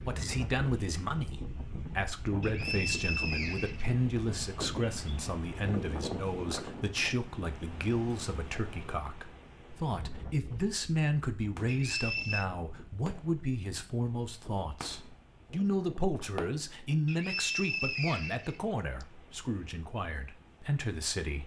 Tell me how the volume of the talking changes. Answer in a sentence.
The loudness of the talking stays about the same.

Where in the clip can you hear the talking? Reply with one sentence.
The talking can be heard from 0.0 to 21.4 s.